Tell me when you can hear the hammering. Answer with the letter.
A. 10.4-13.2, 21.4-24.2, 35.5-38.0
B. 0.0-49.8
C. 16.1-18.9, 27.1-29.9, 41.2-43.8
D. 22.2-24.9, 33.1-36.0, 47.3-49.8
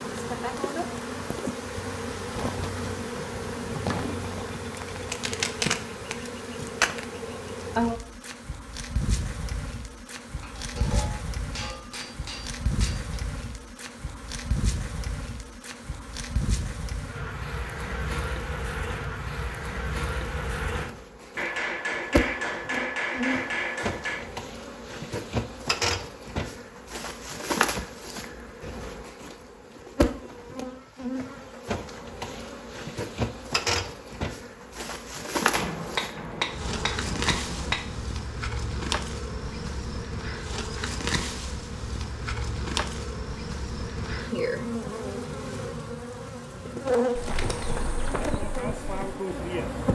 A.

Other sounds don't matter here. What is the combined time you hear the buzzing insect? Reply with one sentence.
The buzzing insect can be heard for 50 seconds in total.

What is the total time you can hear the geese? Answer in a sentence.
The geese can't be heard in this clip.